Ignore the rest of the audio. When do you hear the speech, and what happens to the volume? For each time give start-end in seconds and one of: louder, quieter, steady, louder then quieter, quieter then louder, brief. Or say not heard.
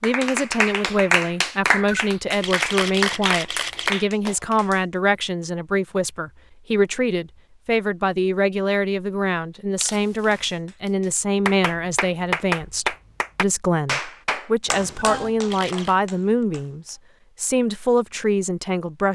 0.0-19.1 steady.